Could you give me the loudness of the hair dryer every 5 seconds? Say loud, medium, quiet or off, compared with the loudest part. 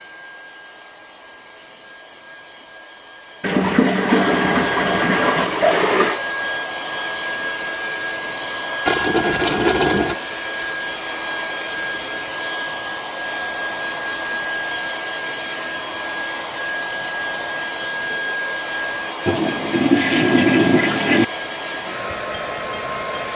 medium, loud, loud, loud, loud.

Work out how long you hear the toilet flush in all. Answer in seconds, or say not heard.
6 s.